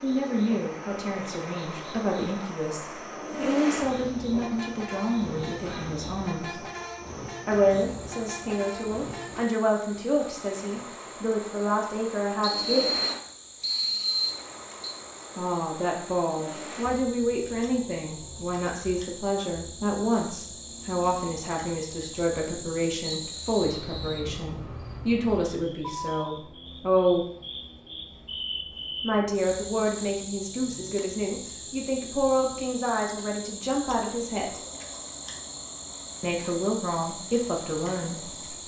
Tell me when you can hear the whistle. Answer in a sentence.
You can hear the whistle from 12.4 to 14.9 s and from 23.1 to 24.3 s.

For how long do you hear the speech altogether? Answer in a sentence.
The speech can be heard for 32 seconds in total.